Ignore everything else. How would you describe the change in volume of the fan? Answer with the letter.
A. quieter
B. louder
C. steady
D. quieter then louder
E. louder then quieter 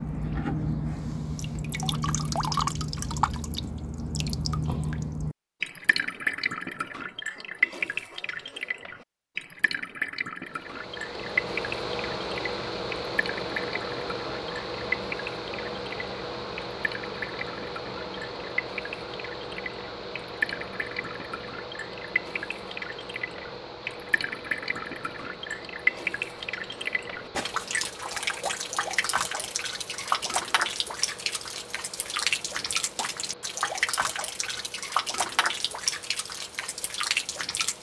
A.